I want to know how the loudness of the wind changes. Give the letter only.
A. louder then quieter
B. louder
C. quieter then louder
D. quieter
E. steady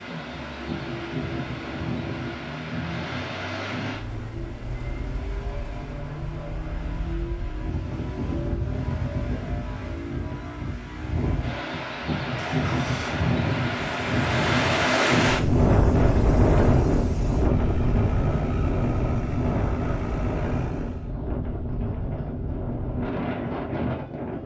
A.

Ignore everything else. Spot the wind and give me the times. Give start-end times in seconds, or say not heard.
0.0-24.4.